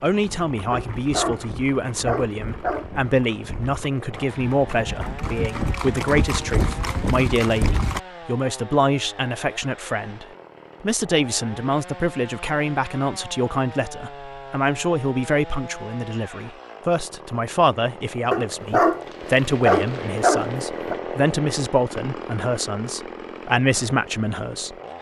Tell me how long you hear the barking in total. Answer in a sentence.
The barking can be heard for 5 seconds in total.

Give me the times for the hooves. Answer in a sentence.
You can hear the hooves from 0.1 to 8.0 s.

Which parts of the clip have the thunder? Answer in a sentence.
You can't hear the thunder here.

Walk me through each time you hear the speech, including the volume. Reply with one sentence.
You can hear the speech from 0.0 to 24.8 s, at a steady volume.